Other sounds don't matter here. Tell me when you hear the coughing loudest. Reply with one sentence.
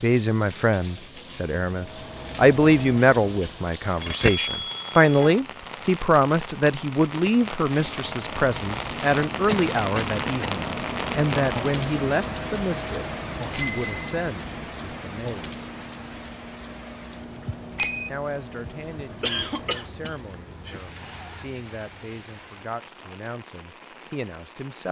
The volume of the coughing peaks at 19 seconds.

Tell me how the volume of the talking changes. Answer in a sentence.
The volume of the talking goes down.